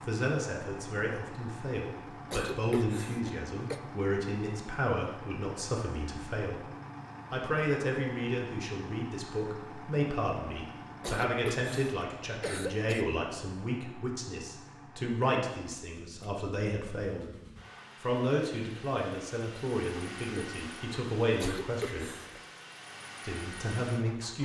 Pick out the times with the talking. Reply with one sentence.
The talking can be heard from 0.0 to 6.7 s, from 7.3 to 17.2 s, from 18.0 to 22.1 s and from 23.2 to 24.4 s.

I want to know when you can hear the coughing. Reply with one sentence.
The coughing can be heard from 2.3 to 3.8 s, from 11.0 to 13.1 s and from 21.4 to 22.4 s.